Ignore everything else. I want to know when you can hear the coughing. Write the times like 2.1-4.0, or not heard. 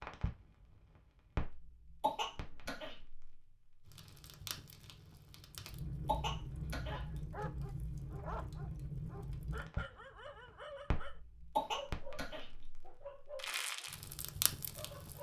2.0-3.0, 6.0-7.0, 11.6-12.4.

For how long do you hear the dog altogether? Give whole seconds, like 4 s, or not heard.
8 s.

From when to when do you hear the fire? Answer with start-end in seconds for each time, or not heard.
0.0-15.1.